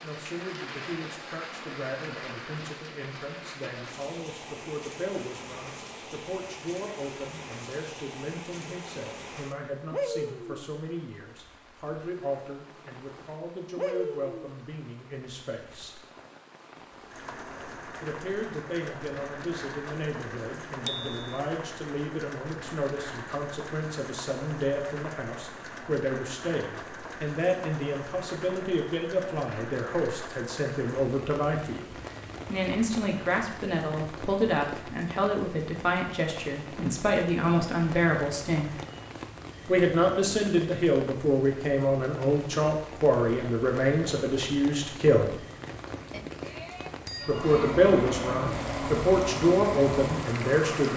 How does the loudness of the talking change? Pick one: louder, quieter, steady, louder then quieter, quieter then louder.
louder.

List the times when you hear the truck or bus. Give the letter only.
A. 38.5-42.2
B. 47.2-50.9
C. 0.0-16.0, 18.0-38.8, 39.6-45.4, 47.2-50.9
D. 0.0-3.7
B.